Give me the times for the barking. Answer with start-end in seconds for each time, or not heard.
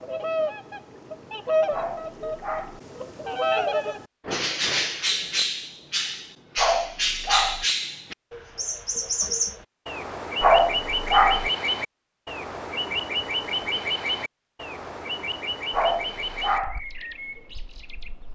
1.7-2.8, 6.5-7.7, 10.4-11.5, 15.7-16.8.